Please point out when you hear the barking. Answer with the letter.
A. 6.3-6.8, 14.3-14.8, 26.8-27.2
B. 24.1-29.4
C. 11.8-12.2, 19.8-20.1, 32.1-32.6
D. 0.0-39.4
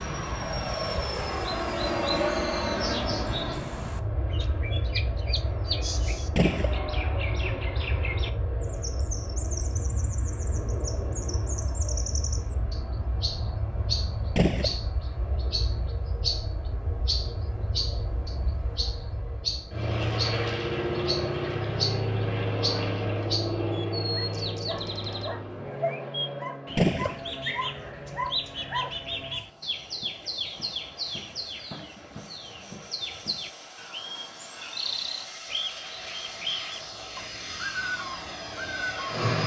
B.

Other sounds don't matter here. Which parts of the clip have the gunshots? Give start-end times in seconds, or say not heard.
6.3-6.8, 14.3-14.8, 26.8-27.2.